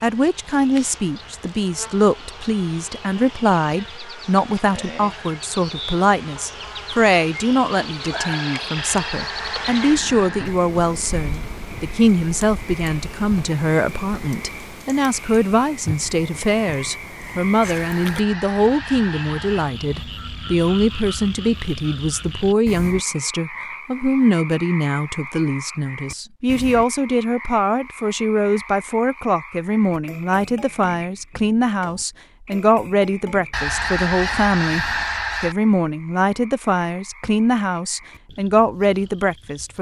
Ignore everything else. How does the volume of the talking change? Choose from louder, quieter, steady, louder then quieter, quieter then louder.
steady.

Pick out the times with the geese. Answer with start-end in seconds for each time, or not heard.
8.8-10.6, 17.6-19.6, 33.5-35.5.